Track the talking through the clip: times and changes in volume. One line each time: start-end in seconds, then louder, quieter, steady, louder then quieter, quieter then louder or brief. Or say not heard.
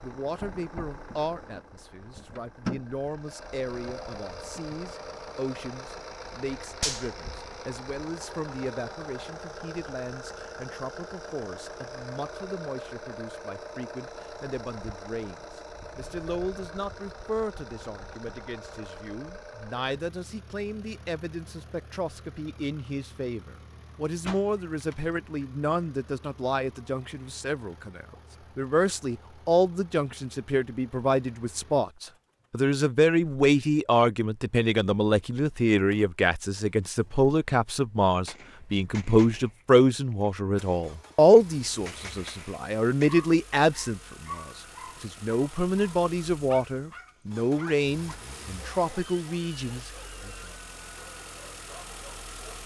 0.0-50.3 louder.